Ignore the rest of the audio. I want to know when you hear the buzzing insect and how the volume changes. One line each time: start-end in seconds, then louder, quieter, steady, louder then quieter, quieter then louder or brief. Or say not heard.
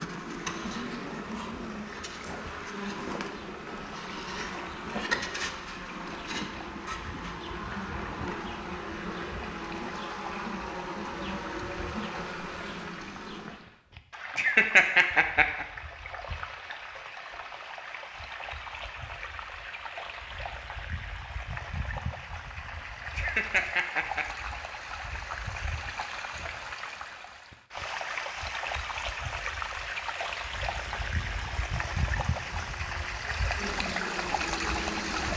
0.0-13.6 steady
30.6-35.3 louder.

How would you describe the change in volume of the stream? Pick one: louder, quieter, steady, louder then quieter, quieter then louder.
louder.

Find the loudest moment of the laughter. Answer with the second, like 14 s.
15 s.